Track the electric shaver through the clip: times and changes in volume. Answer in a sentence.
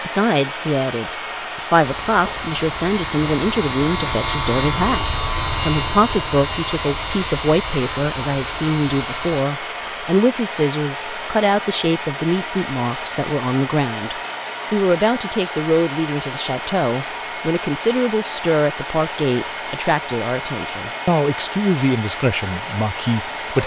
The electric shaver can be heard from 1.8 to 9.4 s, getting louder then quieter.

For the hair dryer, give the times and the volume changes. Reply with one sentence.
You can hear the hair dryer from 0.0 to 23.6 s, at a steady volume.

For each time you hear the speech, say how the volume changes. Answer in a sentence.
The speech can be heard from 0.0 to 23.6 s, at a steady volume.